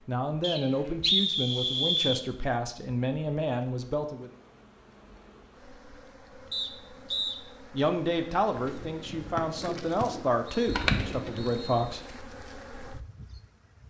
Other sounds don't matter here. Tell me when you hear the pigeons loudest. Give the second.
11 s.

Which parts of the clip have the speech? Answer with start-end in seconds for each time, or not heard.
0.1-4.3, 7.7-12.0.